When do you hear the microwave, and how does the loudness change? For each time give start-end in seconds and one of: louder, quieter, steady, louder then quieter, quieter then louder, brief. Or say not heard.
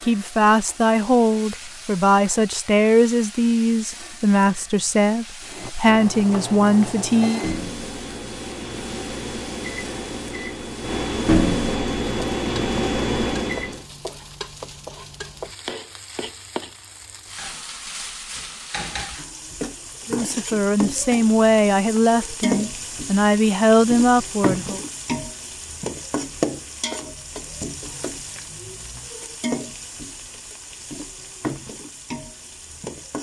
5.4-13.8 louder.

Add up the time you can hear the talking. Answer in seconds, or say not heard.
12 s.